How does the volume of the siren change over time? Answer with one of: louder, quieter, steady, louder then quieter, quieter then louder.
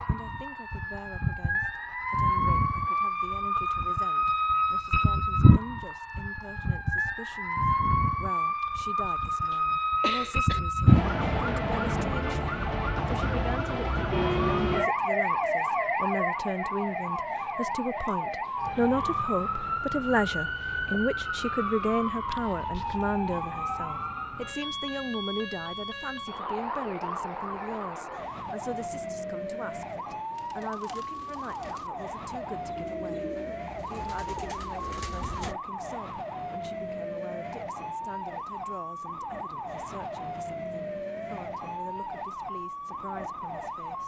quieter.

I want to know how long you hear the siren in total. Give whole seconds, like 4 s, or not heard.
44 s.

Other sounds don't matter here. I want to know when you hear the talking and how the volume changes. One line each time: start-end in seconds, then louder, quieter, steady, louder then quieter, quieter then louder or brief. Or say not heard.
0.0-44.0 louder then quieter.